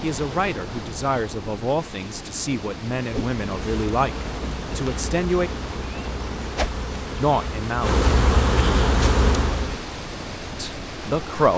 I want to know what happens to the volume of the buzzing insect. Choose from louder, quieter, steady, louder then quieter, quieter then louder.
louder.